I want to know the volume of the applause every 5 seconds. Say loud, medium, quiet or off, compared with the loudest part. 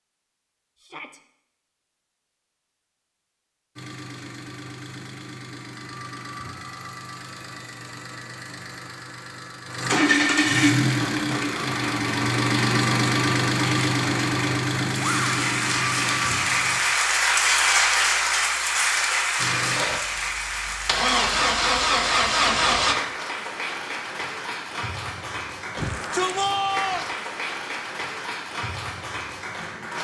off, off, medium, loud, medium, medium.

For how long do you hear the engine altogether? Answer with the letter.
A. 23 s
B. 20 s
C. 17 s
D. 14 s
C.